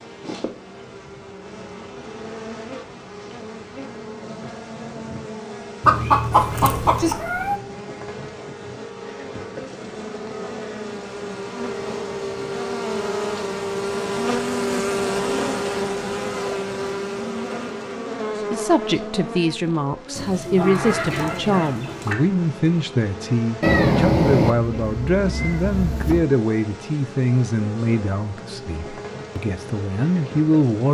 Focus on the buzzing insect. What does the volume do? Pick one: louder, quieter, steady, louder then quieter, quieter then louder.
louder then quieter.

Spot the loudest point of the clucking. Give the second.
6 s.